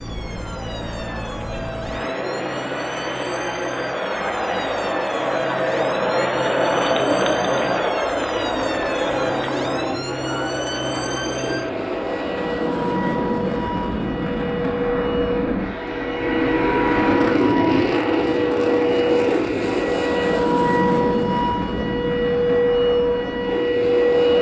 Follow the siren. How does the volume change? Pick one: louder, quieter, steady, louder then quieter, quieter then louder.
louder.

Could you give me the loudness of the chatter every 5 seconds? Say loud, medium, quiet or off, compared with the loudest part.
medium, loud, medium, off, off.